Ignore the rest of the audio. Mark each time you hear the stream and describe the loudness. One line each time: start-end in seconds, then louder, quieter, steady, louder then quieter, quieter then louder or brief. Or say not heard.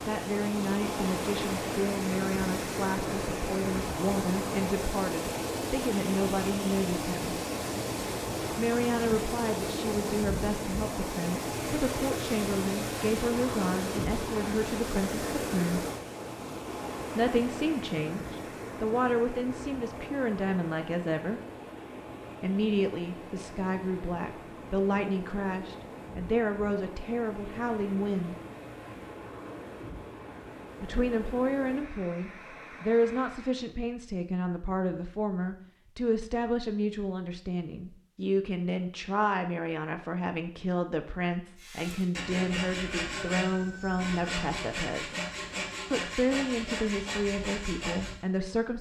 0.0-33.8 quieter.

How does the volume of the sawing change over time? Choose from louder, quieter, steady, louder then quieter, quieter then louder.
steady.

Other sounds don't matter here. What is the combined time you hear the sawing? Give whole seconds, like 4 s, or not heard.
7 s.